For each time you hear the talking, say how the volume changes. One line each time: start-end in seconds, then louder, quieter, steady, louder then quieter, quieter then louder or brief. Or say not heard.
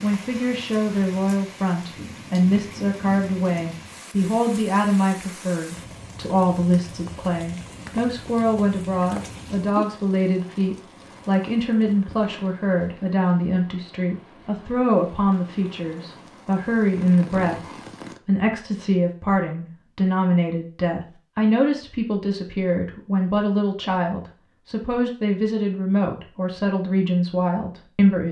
0.0-28.2 steady.